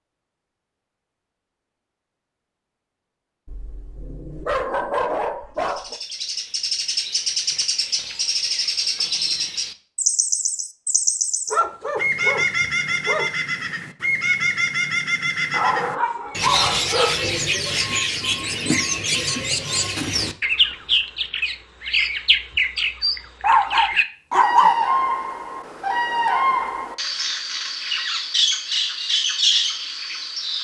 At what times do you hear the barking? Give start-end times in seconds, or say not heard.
3.5-6.0, 11.5-13.3, 15.5-17.2, 23.4-24.8.